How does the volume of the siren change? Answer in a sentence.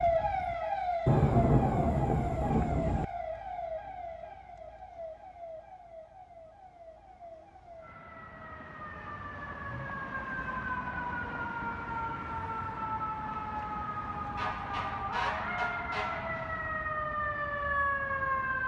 The loudness of the siren goes down, then up.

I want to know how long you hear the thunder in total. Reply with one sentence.
You can hear the thunder for 2 seconds altogether.